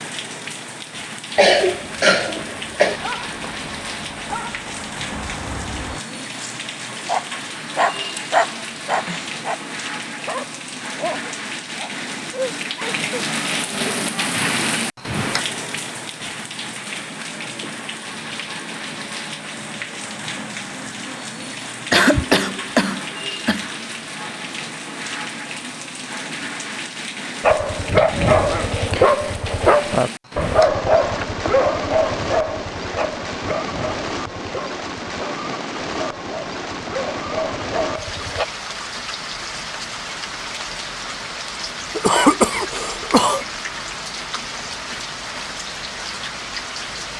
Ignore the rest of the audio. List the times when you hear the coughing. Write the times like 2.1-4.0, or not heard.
1.4-3.0, 21.9-23.7, 42.0-43.5.